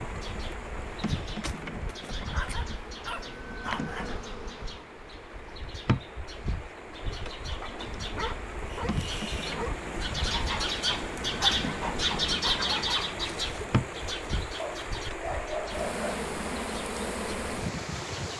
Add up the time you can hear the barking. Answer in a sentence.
You can hear the barking for 6 seconds altogether.